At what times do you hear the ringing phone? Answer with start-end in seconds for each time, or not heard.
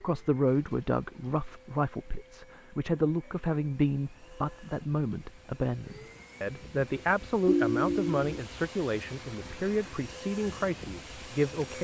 7.5-8.4.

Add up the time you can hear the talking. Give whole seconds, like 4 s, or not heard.
12 s.